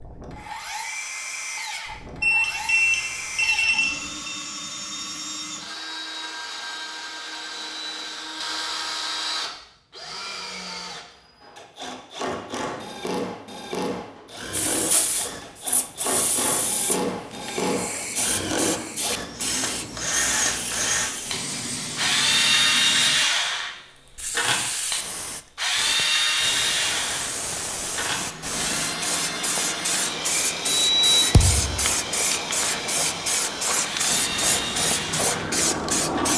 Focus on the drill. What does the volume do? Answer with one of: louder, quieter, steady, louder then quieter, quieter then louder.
louder then quieter.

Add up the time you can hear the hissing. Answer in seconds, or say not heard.
22 s.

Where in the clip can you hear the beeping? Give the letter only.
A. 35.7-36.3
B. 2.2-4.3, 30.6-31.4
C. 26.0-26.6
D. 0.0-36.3
B.